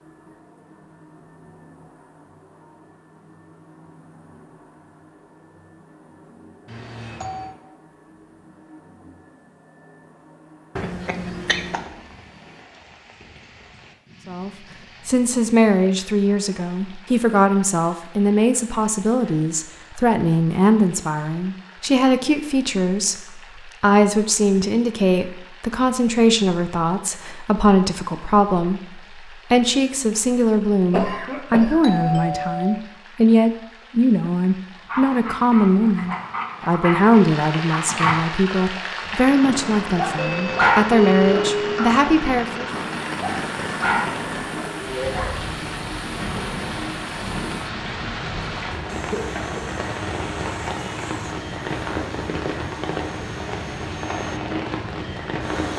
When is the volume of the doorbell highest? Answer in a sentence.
The volume of the doorbell peaks at 41 seconds.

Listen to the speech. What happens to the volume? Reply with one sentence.
The loudness of the speech stays about the same.